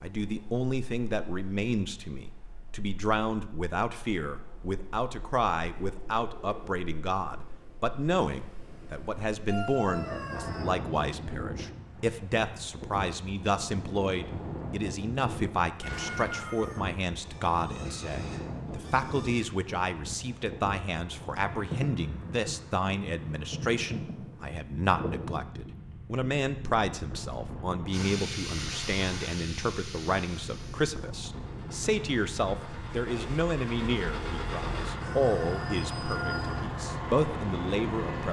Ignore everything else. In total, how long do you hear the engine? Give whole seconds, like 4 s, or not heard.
10 s.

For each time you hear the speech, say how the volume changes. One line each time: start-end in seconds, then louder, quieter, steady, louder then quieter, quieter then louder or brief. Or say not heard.
0.0-38.2 steady.